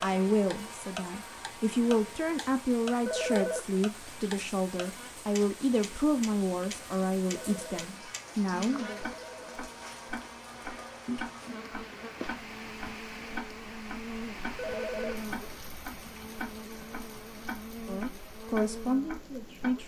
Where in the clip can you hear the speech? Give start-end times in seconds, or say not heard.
0.0-9.0, 17.9-19.8.